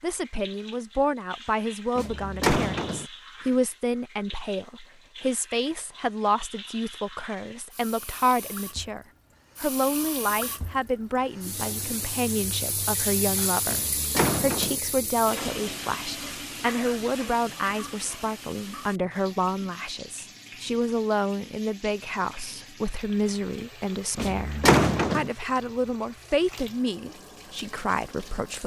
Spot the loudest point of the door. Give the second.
25 s.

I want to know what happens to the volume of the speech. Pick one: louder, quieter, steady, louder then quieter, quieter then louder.
steady.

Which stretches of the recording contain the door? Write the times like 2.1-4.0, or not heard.
1.9-3.0, 13.7-14.8, 24.1-25.3.